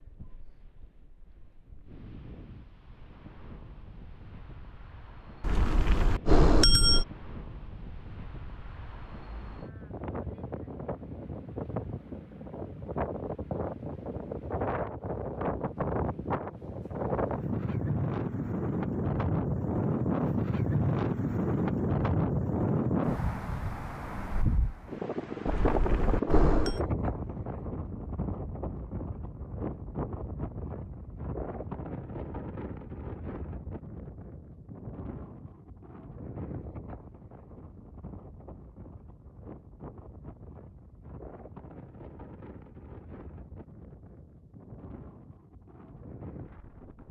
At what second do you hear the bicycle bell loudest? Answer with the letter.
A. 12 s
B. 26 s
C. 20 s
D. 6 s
D.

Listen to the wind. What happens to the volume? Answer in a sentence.
The volume of the wind goes up, then down.